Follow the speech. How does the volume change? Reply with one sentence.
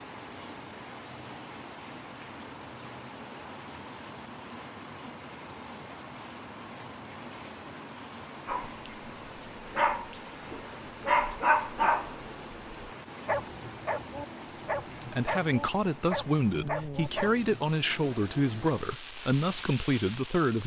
The volume of the speech stays about the same.